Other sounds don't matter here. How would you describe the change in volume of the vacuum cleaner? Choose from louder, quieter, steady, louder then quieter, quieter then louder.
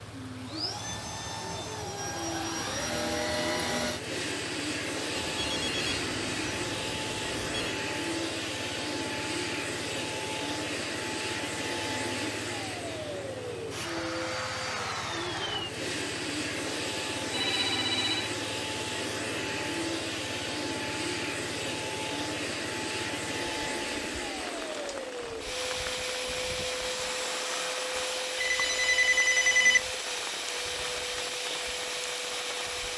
steady.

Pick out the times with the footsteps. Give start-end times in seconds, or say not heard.
not heard.